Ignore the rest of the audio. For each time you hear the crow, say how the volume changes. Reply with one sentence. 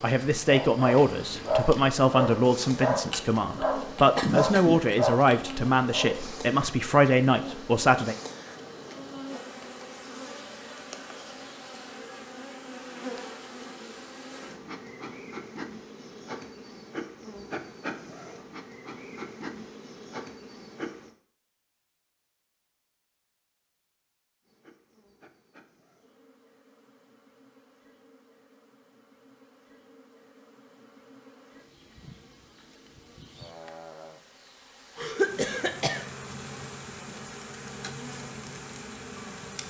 The crow can't be heard in this clip.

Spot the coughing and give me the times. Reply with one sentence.
You can hear the coughing from 4.2 to 5.1 s and from 35.0 to 36.0 s.